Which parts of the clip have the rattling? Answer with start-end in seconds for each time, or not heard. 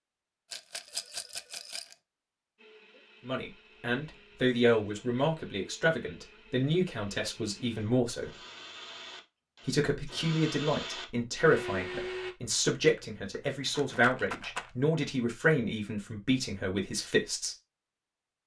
0.5-1.9, 13.2-14.7.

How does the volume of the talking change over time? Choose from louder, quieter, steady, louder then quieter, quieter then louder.
steady.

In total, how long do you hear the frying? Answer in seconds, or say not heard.
not heard.